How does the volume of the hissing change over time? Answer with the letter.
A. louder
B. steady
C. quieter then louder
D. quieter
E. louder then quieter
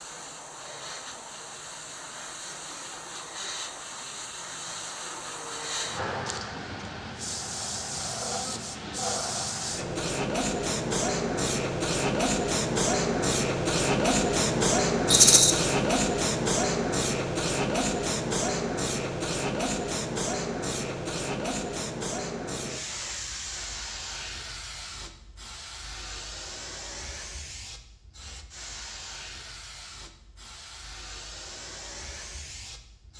E.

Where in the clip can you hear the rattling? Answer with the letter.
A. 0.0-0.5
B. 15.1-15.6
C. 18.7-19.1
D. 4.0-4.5
B.